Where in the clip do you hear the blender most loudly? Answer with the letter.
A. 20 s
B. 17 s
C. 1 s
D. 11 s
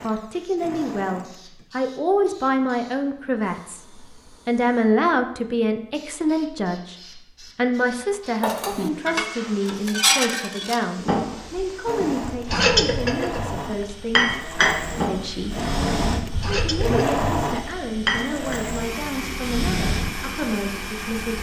B.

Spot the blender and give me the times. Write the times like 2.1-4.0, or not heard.
0.0-1.6, 11.8-21.3.